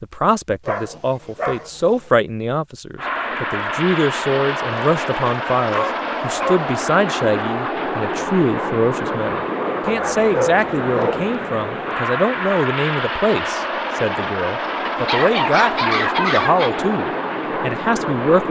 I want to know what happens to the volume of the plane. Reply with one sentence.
The volume of the plane stays about the same.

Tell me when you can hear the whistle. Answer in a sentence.
The whistle can't be heard in this clip.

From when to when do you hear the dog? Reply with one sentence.
The dog can be heard from 0.7 to 2.1 s, from 4.7 to 6.7 s, from 9.8 to 11.2 s and from 14.8 to 16.8 s.